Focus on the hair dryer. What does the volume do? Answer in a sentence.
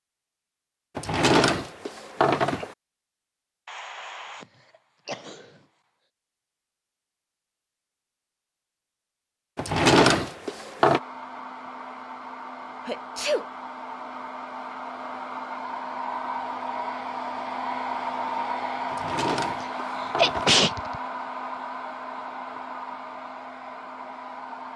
The loudness of the hair dryer goes up, then down.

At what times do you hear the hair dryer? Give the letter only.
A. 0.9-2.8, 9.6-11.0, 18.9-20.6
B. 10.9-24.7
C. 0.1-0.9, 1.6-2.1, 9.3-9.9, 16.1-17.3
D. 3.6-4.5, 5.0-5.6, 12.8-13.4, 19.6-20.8
B.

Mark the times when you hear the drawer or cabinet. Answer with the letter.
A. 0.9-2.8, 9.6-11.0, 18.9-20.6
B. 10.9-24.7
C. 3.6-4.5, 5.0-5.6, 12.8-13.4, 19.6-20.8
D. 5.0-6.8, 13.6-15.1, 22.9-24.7
A.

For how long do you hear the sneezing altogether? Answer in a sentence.
The sneezing can be heard for 3 seconds in total.